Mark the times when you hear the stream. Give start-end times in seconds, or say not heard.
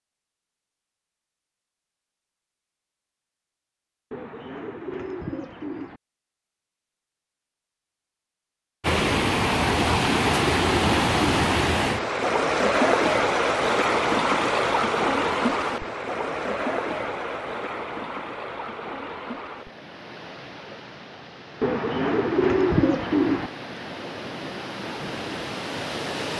8.8-26.3.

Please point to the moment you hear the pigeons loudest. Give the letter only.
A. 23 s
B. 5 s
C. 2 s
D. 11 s
A.